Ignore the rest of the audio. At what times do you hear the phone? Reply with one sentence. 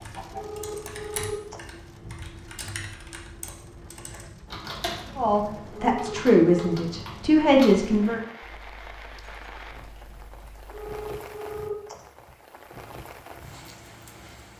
You can hear the phone from 0.3 to 1.6 s, from 5.8 to 6.8 s and from 10.7 to 11.9 s.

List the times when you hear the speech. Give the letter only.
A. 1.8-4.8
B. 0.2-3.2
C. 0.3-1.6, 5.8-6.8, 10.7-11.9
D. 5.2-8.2
D.